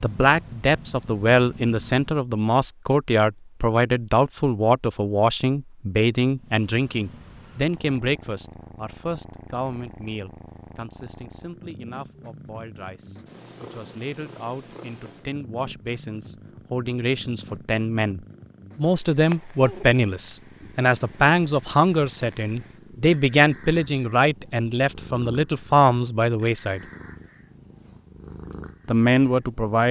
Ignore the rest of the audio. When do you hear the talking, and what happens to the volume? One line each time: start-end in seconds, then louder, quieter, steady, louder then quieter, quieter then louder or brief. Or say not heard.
0.0-26.8 quieter then louder
28.9-29.8 brief.